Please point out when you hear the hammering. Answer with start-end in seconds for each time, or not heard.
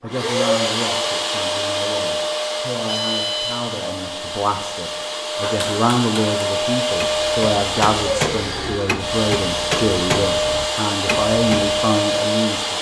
5.4-11.8.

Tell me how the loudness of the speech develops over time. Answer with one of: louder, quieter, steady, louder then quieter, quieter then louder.
louder.